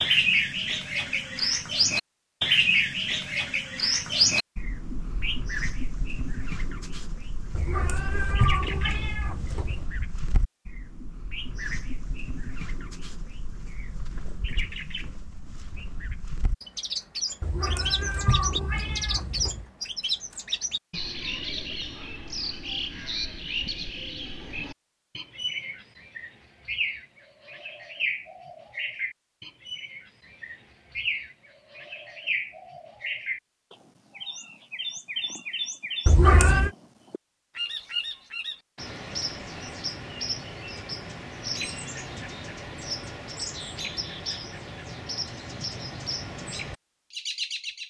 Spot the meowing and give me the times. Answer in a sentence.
The meowing can be heard from 7.5 to 9.8 s, from 17.4 to 19.6 s and from 36.0 to 36.7 s.